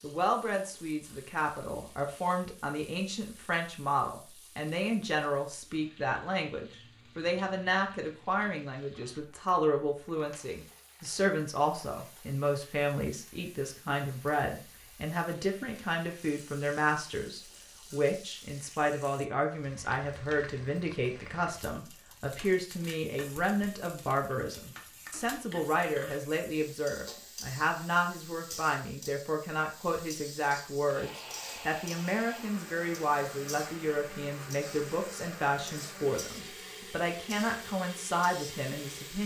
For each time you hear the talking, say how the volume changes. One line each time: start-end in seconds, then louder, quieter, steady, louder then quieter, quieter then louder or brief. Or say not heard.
0.0-39.2 steady.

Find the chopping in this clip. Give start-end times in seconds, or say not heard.
not heard.